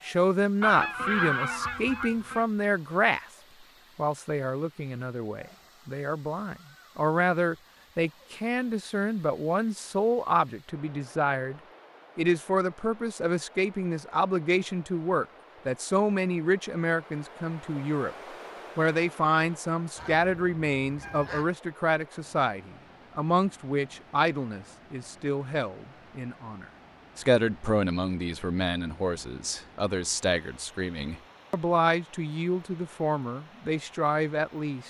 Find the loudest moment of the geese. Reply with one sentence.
The loudest moment of the geese is at 1 second.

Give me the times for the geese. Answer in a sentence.
The geese can be heard from 0.6 to 2.5 s and from 19.9 to 21.5 s.